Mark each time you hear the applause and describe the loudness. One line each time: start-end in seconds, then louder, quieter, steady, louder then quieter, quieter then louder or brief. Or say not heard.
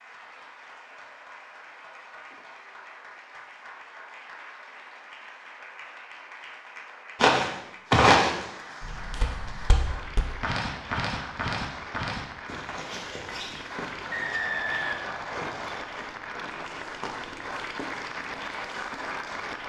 0.0-19.6 louder.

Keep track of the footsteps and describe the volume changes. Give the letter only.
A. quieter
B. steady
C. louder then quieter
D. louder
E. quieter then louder
A.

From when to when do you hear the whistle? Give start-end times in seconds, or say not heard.
14.1-15.8.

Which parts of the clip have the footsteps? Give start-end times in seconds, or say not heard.
7.2-19.1.